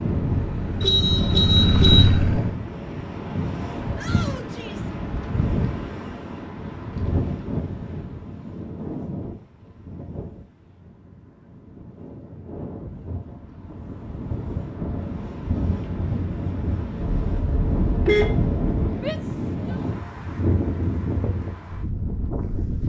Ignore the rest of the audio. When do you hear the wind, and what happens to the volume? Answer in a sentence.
You can hear the wind from 0.0 to 22.8 s, getting quieter then louder.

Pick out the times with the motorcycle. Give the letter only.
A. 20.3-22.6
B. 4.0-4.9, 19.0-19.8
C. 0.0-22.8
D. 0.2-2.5
D.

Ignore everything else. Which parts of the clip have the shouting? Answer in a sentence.
The shouting can be heard from 4.0 to 4.9 s and from 19.0 to 19.8 s.